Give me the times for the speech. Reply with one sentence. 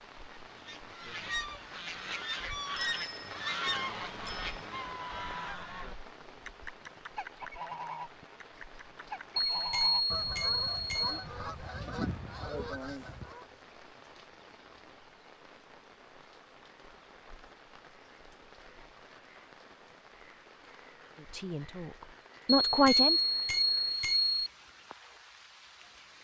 You can hear the speech from 21.2 to 23.2 s.